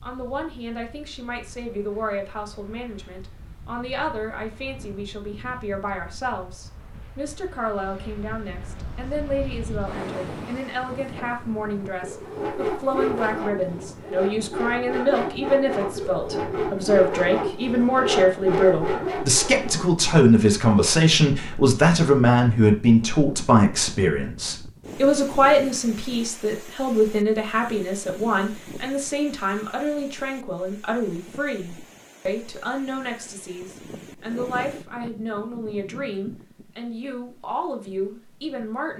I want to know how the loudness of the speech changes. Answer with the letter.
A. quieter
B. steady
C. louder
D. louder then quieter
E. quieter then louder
D.